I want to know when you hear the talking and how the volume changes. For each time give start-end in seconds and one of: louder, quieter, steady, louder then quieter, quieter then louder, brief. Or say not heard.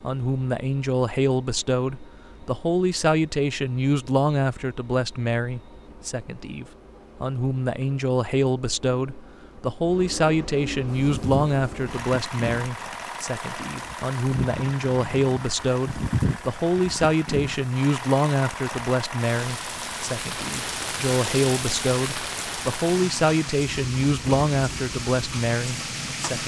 0.0-26.4 steady.